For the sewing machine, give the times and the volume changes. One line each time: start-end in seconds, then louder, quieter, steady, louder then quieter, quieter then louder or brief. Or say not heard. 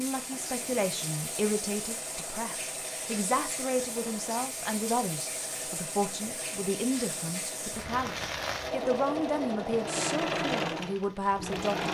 0.1-11.8 louder.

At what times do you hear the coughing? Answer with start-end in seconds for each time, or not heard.
not heard.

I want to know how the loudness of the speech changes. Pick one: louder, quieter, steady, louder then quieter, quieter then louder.
steady.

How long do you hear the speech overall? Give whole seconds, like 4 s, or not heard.
12 s.